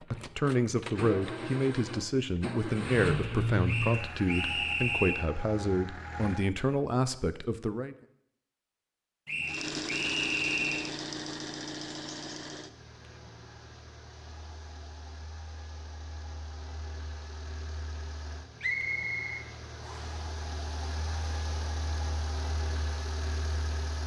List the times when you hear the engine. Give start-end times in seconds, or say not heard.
0.0-6.5, 9.4-24.0.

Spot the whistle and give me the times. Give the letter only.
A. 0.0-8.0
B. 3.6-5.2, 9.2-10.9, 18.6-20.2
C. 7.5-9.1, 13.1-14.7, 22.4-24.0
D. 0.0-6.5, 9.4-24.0
B.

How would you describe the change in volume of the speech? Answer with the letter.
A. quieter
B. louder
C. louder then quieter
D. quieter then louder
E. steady
E.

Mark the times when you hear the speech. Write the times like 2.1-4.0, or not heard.
0.0-8.0.